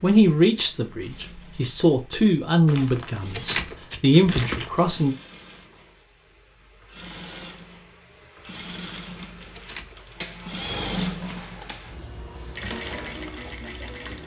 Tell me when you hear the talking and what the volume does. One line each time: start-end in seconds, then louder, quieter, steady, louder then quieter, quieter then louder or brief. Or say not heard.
0.0-5.2 quieter then louder.